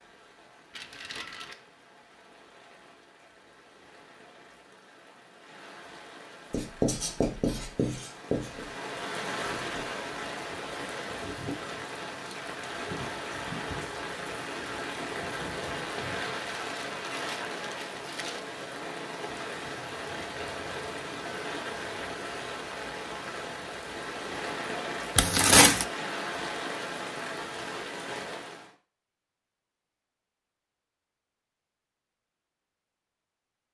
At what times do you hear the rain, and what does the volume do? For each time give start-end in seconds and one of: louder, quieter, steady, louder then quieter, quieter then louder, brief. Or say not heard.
0.0-28.8 louder.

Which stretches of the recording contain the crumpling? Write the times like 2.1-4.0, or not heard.
0.7-1.6, 16.4-18.4, 25.1-25.9.